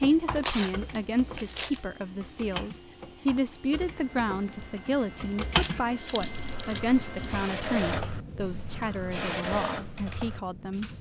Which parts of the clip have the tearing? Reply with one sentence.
The tearing can be heard from 0.3 to 1.9 s and from 5.5 to 7.5 s.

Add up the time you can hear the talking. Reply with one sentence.
The talking can be heard for 11 seconds in total.